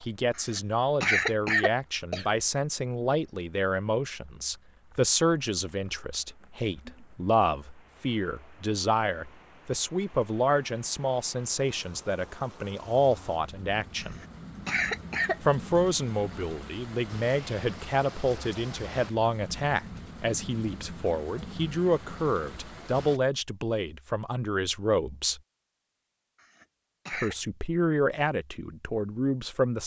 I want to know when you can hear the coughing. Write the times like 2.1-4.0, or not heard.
0.3-2.4, 14.0-15.4, 26.4-27.4.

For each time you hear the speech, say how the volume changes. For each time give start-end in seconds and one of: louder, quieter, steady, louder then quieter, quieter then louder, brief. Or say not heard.
0.0-14.2 steady
15.4-25.4 steady
27.1-29.8 brief.